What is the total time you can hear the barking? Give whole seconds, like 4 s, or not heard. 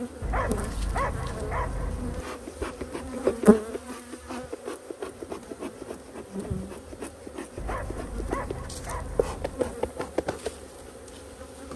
4 s.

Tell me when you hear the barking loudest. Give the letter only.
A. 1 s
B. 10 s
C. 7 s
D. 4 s
A.